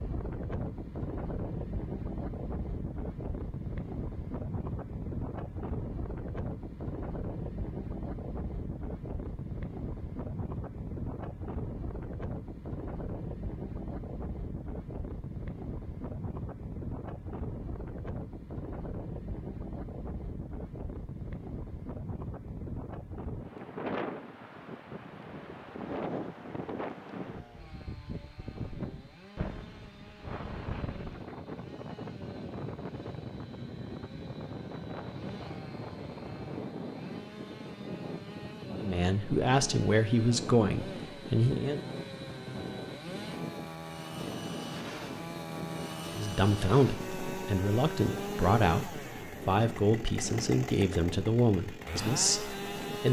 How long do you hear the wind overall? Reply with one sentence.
You can hear the wind for 53 seconds altogether.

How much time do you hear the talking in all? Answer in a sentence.
You can hear the talking for 10 seconds altogether.